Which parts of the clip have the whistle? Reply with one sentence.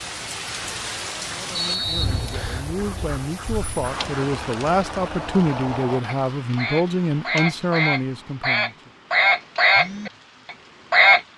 The whistle can be heard from 1.6 to 2.6 s.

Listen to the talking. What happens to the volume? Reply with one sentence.
The volume of the talking goes up.